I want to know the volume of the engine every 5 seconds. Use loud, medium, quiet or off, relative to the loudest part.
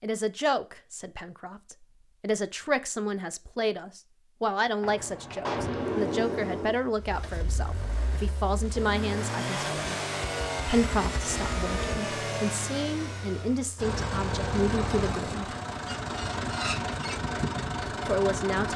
off, medium, loud, loud.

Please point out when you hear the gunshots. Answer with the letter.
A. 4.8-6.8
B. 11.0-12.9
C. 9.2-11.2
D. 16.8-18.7
A.